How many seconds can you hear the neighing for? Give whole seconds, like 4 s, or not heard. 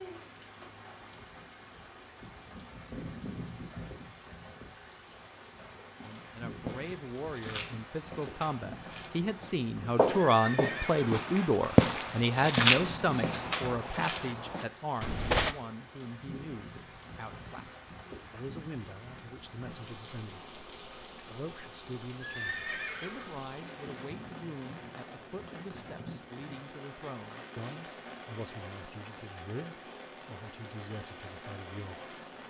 2 s.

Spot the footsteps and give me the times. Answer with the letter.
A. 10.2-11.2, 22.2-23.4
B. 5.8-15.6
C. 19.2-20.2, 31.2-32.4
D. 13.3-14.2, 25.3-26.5
B.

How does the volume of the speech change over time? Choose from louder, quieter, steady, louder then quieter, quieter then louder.
quieter.